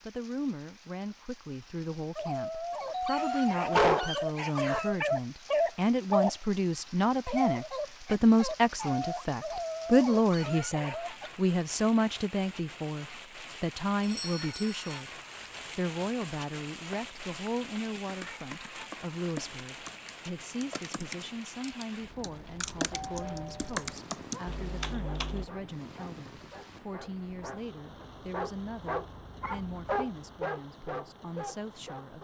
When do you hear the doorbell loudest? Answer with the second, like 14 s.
4 s.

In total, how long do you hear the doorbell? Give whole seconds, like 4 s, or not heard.
3 s.